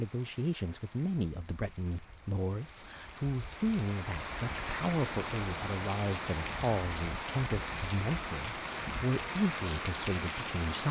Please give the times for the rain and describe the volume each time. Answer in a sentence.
You can hear the rain from 0.0 to 10.8 s, getting louder.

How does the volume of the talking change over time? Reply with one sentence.
The loudness of the talking stays about the same.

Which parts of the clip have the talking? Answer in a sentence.
You can hear the talking from 0.0 to 10.8 s.